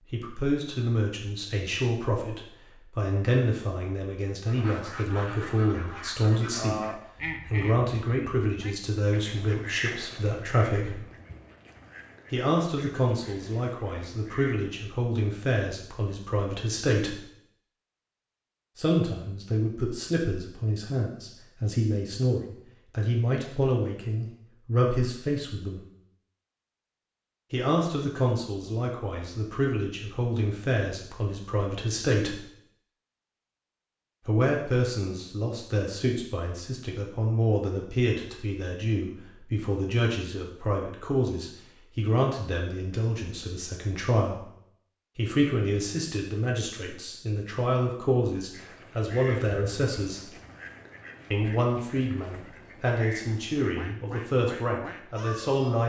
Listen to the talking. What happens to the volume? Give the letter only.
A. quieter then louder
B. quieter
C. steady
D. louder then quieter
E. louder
C.